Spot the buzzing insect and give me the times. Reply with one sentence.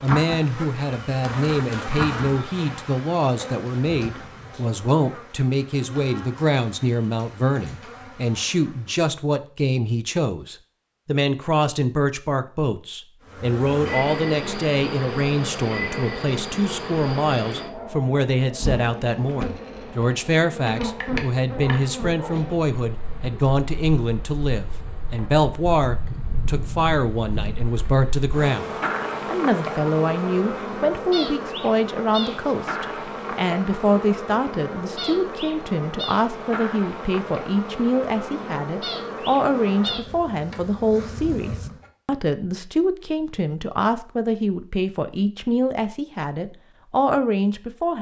You can hear the buzzing insect from 0.0 to 9.2 s and from 13.2 to 41.9 s.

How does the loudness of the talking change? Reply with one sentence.
The loudness of the talking stays about the same.